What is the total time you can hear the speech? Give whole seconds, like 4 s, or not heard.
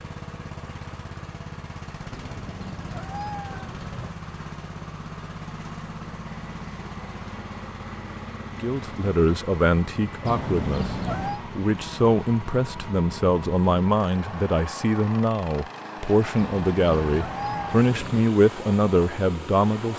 11 s.